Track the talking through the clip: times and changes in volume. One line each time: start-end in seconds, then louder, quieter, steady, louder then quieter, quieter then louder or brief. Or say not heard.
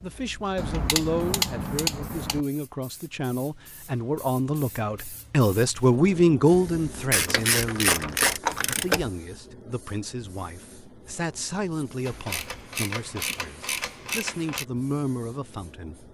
0.0-16.1 louder then quieter.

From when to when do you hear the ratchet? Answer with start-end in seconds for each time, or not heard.
0.6-2.4, 7.1-9.1, 12.1-14.7.